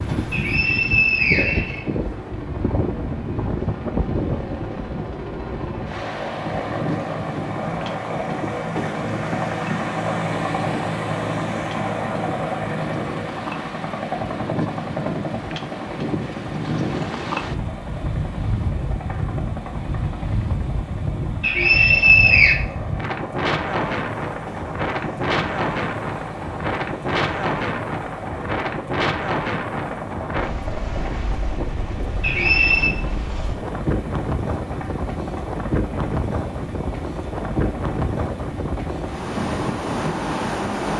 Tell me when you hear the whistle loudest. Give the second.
22 s.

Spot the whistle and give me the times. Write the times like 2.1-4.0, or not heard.
0.3-1.9, 21.4-22.6, 32.2-33.0.